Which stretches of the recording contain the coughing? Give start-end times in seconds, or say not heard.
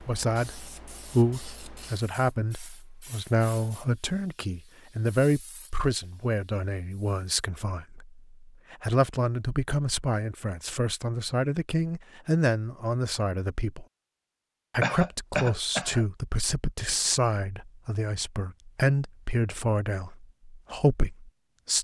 14.8-16.1.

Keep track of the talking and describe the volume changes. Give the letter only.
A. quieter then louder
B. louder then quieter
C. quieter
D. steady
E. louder
D.